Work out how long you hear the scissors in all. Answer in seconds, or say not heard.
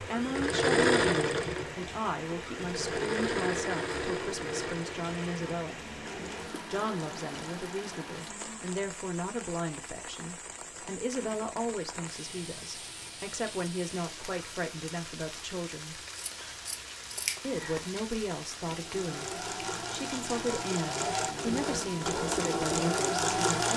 2 s.